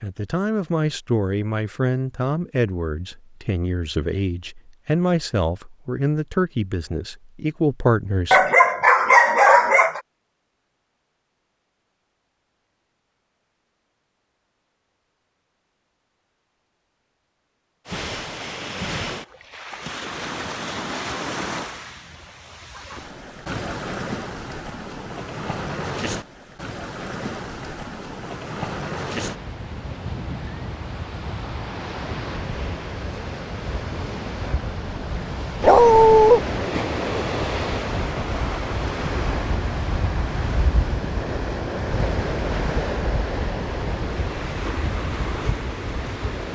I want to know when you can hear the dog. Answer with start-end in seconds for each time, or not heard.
8.3-10.0, 35.6-36.4.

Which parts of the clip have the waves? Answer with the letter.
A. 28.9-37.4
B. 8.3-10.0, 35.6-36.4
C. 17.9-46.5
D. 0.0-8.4
C.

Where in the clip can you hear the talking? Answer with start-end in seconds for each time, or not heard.
0.0-8.4.